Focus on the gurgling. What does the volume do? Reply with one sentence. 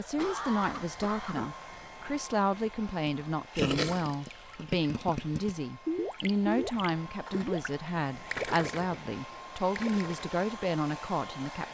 The loudness of the gurgling goes down.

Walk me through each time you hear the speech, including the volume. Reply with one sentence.
The speech can be heard from 0.0 to 11.6 s, at a steady volume.